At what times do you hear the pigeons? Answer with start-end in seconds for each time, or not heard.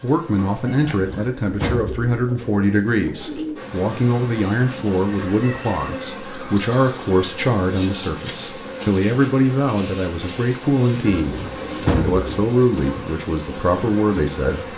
0.9-3.6, 10.9-12.4.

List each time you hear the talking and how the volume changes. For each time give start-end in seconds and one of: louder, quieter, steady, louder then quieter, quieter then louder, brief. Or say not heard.
0.0-14.7 steady.